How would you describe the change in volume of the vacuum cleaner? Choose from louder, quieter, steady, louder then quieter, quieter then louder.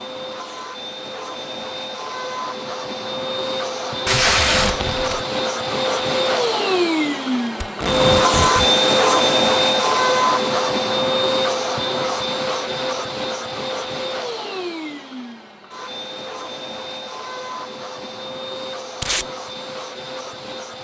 louder then quieter.